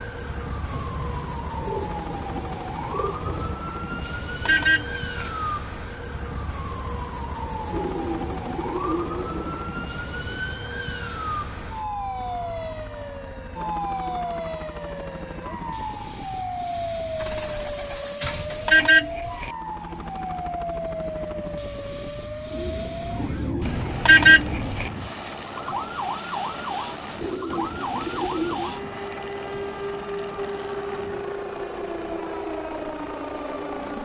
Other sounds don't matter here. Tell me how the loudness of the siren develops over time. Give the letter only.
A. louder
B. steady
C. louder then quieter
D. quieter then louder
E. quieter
B.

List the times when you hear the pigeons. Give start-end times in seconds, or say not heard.
0.7-3.6, 7.7-9.7, 17.1-18.9, 22.5-24.8, 27.2-28.8.